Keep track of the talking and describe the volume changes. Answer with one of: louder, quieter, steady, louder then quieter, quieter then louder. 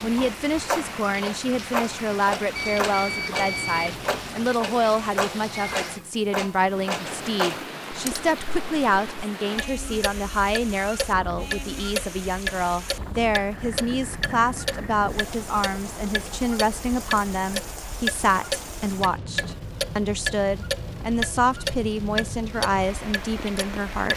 steady.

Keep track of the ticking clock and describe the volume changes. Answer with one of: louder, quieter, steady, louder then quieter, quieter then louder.
steady.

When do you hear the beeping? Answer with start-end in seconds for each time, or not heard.
2.5-4.4.